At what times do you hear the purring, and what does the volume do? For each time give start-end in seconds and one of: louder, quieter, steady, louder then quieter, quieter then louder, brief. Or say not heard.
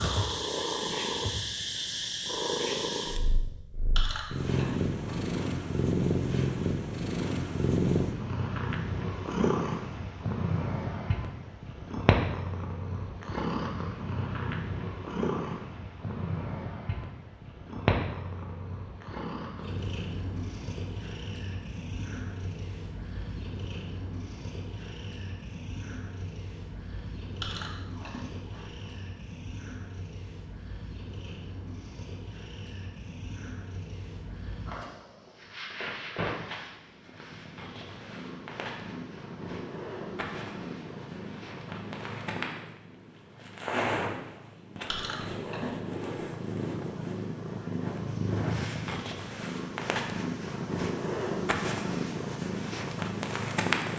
0.0-53.9 quieter then louder.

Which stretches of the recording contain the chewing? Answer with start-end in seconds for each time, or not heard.
4.0-5.4, 27.4-28.9, 44.9-46.1.